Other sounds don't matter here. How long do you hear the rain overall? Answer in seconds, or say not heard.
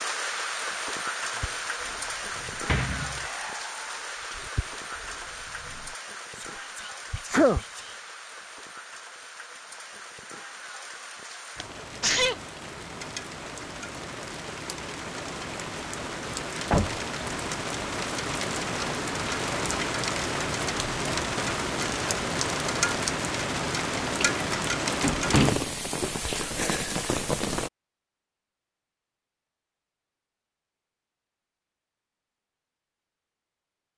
28 s.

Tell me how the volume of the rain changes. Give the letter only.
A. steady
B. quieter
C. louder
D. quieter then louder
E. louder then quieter
D.